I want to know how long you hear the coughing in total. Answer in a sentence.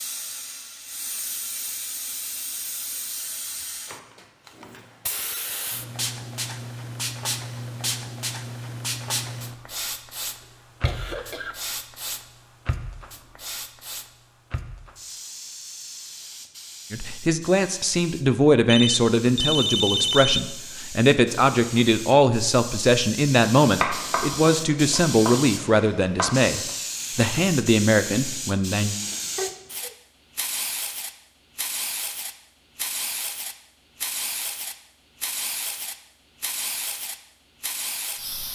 The coughing can be heard for 2 seconds in total.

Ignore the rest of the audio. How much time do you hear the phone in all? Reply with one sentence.
The phone can be heard for 2 seconds in total.